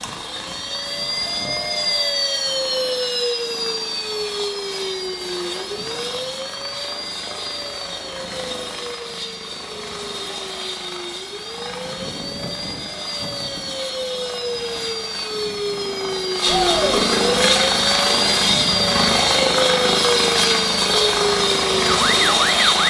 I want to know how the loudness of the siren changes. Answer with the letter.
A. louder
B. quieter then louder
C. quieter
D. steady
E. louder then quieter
B.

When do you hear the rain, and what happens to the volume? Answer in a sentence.
The rain can't be heard in this clip.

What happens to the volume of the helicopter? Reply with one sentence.
The loudness of the helicopter goes up.